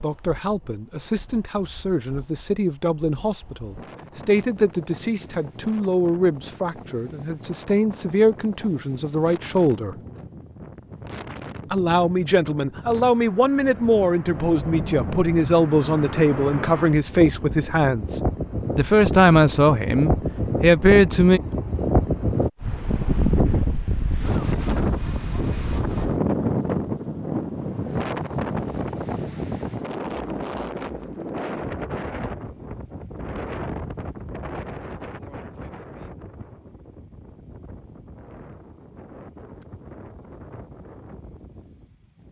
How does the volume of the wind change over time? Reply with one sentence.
The loudness of the wind goes up, then down.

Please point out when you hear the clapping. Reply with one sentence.
The clapping can't be heard in this clip.